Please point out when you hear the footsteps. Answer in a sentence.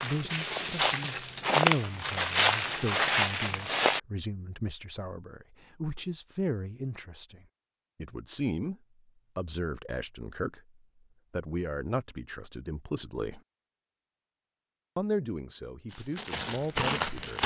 The footsteps can be heard from 0.0 to 4.0 s and from 15.9 to 17.4 s.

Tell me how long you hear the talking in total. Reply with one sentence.
The talking can be heard for 14 seconds in total.